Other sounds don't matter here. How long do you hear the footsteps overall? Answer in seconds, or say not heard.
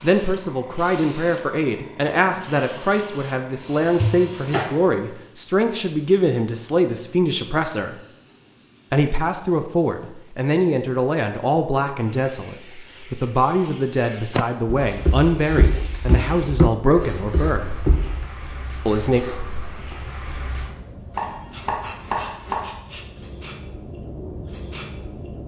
4 s.